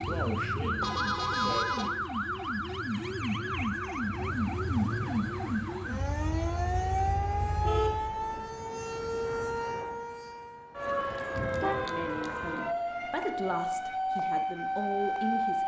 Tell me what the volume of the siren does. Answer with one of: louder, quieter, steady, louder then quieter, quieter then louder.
steady.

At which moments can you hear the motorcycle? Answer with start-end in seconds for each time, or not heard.
0.0-8.1.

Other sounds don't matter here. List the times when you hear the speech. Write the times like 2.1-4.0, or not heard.
0.0-2.0, 11.8-15.6.